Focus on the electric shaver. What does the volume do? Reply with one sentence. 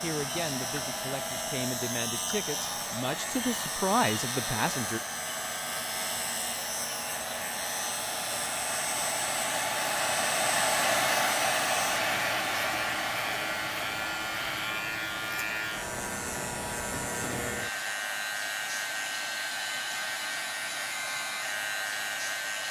The volume of the electric shaver stays about the same.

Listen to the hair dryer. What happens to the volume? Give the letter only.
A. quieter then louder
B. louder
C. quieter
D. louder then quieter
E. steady
D.